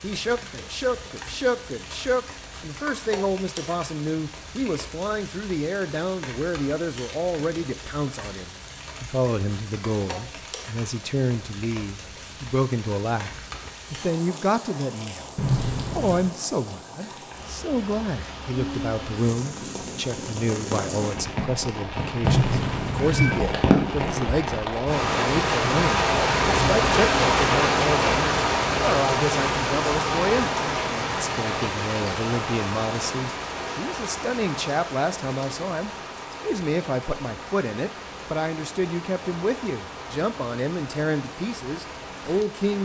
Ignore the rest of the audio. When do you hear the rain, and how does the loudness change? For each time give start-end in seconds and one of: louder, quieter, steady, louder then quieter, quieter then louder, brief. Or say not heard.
0.0-42.8 louder then quieter.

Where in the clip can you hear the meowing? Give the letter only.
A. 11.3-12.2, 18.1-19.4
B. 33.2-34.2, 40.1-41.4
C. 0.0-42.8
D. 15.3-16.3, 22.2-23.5
D.